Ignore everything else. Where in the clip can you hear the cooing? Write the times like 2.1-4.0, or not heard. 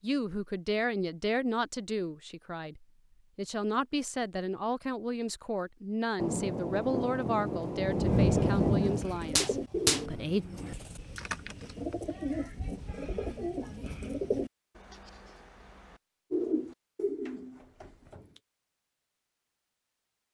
8.0-18.4.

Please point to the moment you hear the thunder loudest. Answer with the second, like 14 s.
8 s.